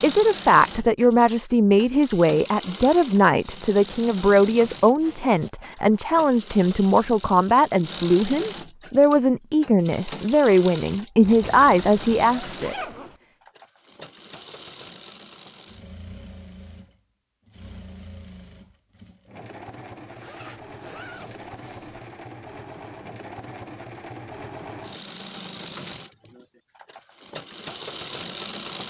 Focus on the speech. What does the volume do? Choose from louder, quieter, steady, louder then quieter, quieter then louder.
steady.